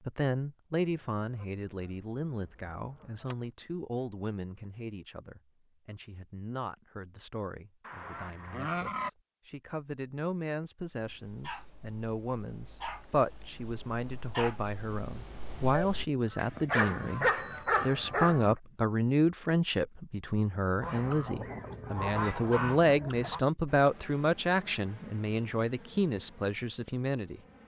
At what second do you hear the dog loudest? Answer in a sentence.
The loudest moment of the dog is at 17 seconds.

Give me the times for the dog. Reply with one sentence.
You can hear the dog from 10.9 to 18.4 s.